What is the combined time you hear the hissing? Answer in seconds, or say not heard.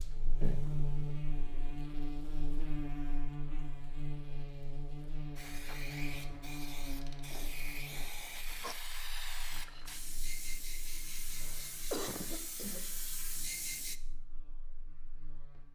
9 s.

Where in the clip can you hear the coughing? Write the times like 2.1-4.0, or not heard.
0.4-1.1, 7.3-8.8, 11.4-12.9.